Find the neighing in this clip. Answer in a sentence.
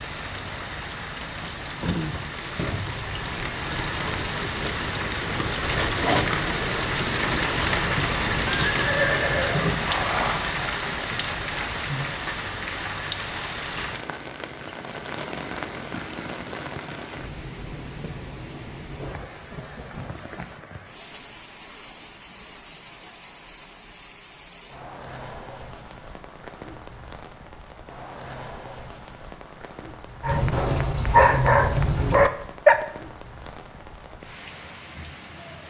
The neighing can be heard from 8.7 to 10.4 s.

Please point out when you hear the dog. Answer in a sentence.
The dog can be heard from 30.2 to 32.8 s.